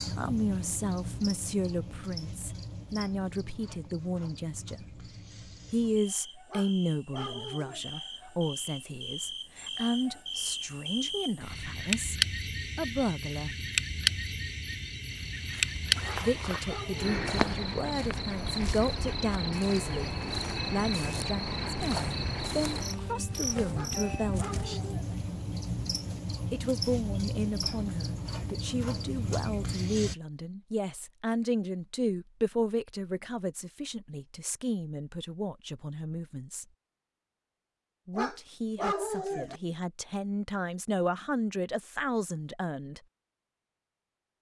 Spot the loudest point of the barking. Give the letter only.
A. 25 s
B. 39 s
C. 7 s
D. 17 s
B.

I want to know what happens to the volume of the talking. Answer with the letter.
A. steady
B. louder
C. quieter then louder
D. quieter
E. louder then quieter
A.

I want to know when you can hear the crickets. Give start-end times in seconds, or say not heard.
0.0-30.1.